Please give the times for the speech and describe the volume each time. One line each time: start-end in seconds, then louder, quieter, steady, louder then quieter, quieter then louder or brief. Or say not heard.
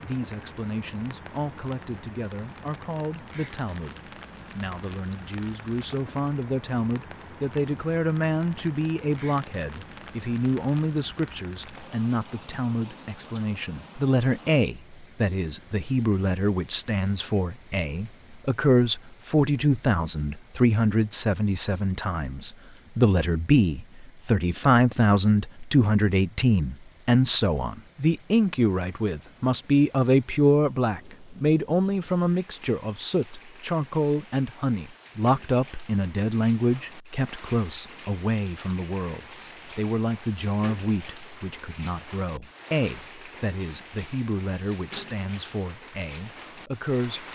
0.0-47.2 louder then quieter.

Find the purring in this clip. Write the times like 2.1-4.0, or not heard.
not heard.